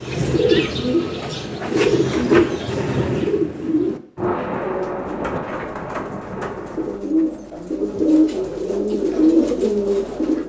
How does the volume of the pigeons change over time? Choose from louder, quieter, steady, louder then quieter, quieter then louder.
quieter then louder.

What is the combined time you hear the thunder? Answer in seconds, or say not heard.
3 s.